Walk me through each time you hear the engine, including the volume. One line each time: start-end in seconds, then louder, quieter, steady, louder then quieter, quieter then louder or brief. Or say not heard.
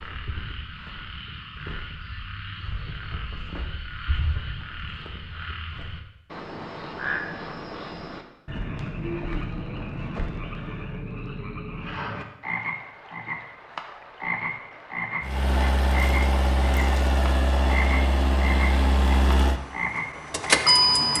15.2-21.1 steady.